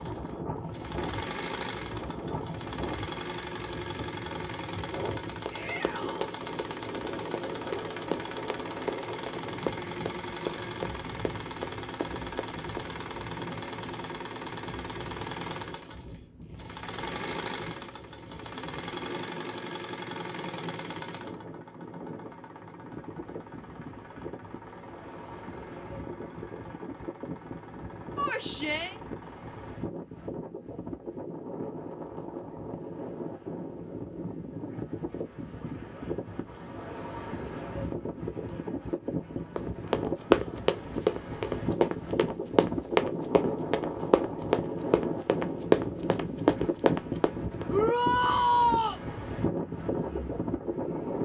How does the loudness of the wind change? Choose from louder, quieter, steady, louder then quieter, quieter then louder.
quieter then louder.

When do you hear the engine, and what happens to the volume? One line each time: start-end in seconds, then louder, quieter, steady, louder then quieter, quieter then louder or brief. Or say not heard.
0.0-29.8 quieter
49.5-51.2 brief.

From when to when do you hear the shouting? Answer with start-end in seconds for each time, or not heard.
5.5-6.3, 28.1-28.9, 47.7-49.0.